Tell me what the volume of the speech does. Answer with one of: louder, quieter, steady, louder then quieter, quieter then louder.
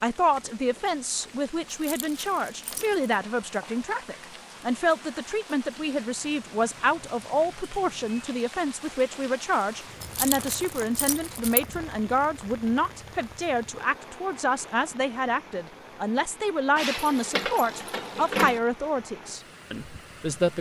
steady.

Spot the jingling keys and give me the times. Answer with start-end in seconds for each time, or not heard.
1.7-2.9, 10.0-11.6, 16.8-18.6.